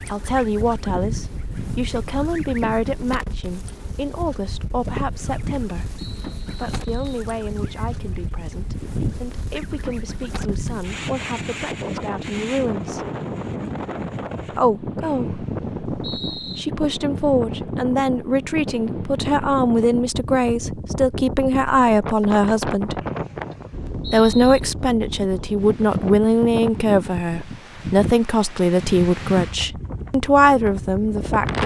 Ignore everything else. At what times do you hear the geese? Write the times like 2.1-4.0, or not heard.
0.0-3.0, 4.8-11.3.